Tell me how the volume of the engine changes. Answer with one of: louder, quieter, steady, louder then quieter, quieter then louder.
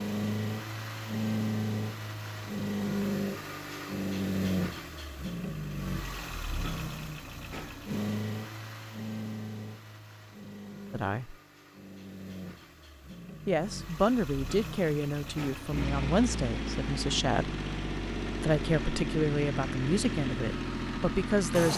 quieter then louder.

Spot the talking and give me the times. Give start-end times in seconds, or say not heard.
10.9-11.3, 13.4-17.6, 18.4-21.7.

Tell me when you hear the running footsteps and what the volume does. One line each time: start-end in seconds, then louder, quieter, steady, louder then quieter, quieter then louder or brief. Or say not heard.
not heard.